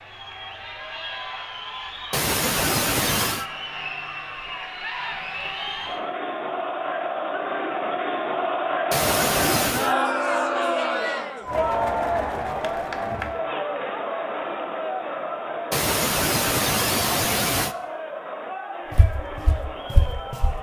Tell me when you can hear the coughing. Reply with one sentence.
You can hear the coughing from 2.1 to 3.5 s, from 8.9 to 9.9 s and from 15.7 to 17.8 s.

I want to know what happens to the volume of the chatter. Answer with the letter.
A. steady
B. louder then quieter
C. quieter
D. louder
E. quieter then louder
B.